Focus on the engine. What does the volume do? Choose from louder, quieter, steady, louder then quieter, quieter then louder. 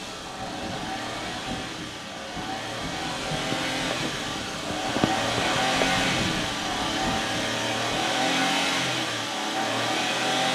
louder.